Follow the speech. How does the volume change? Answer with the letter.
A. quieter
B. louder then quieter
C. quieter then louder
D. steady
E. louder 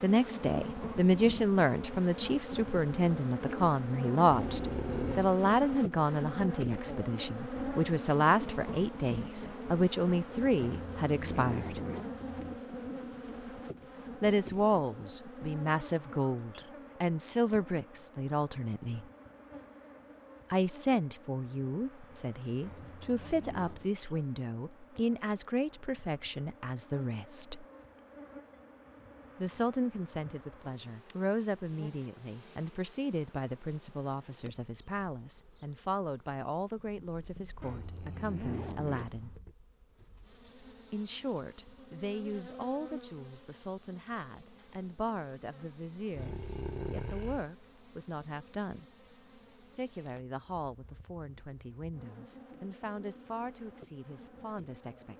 A.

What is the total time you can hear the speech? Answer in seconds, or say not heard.
47 s.